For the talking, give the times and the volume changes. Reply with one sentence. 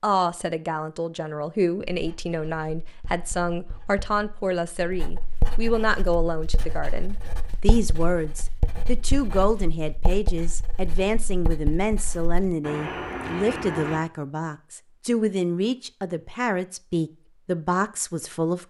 The talking can be heard from 0.0 to 18.6 s, at a steady volume.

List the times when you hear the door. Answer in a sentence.
The door can be heard from 12.6 to 14.1 s.